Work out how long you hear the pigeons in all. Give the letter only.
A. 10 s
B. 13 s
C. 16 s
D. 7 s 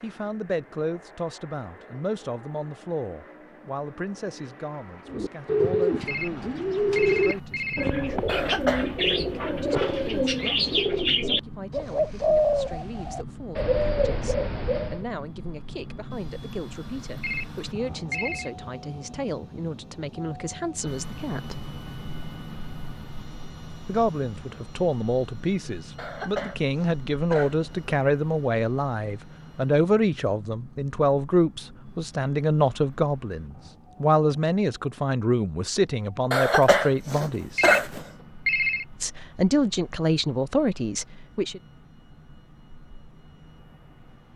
A.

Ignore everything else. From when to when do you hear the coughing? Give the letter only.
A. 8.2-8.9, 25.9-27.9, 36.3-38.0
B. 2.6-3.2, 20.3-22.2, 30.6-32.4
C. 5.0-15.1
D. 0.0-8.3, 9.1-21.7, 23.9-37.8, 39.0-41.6
A.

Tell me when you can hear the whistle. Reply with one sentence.
You can't hear the whistle here.